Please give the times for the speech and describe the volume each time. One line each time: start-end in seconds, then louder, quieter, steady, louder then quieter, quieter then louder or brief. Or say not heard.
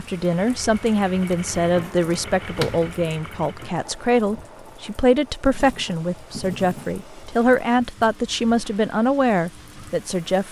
0.0-10.4 steady.